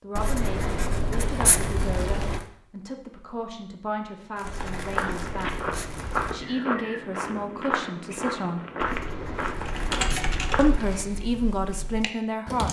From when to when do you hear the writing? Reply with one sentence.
You can hear the writing from 0.1 to 2.4 s, from 4.5 to 6.5 s and from 8.8 to 11.1 s.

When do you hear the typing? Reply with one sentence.
The typing can be heard from 9.7 to 12.6 s.